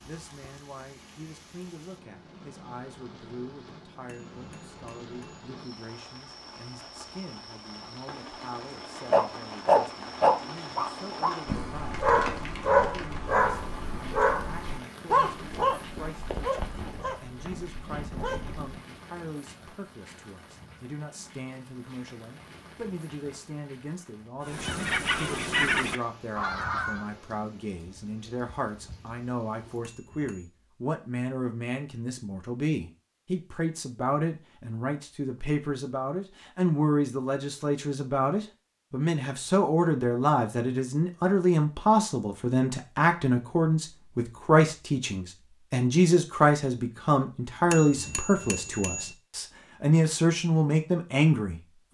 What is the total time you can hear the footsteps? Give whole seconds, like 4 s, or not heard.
not heard.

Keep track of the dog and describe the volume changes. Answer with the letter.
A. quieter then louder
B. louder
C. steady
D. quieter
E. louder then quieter
D.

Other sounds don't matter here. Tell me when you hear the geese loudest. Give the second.
26 s.